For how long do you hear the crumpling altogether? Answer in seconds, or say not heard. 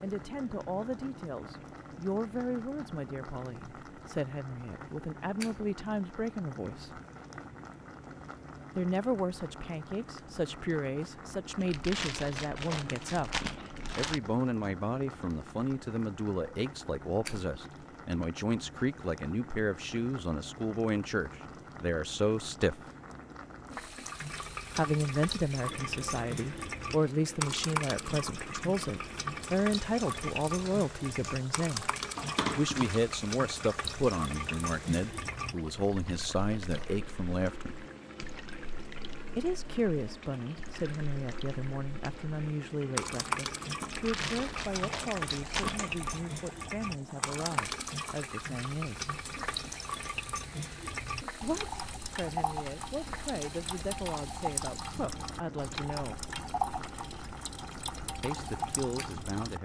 6 s.